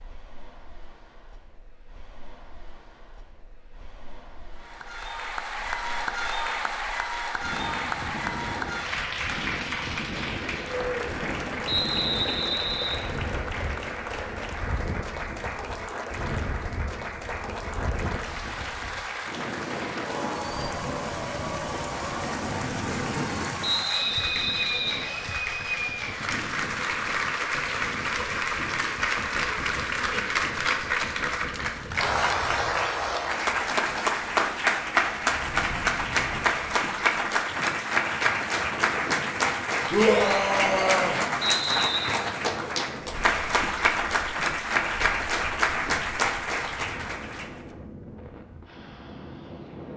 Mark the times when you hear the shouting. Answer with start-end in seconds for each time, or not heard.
39.9-41.2.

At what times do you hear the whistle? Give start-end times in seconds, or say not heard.
11.7-13.0, 23.6-25.1, 41.4-42.1.